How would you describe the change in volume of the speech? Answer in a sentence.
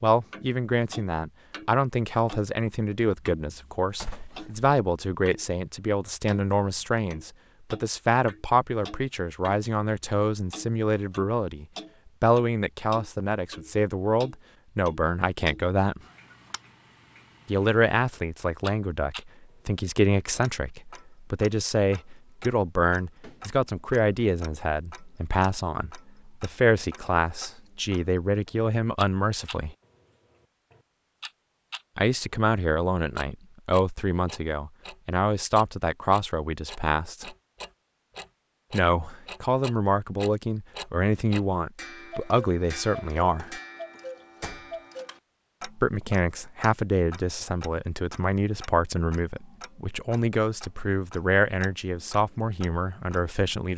The loudness of the speech stays about the same.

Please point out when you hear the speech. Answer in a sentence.
The speech can be heard from 0.0 to 16.0 s, from 17.4 to 29.8 s, from 31.9 to 37.4 s, from 38.7 to 43.6 s and from 45.8 to 53.7 s.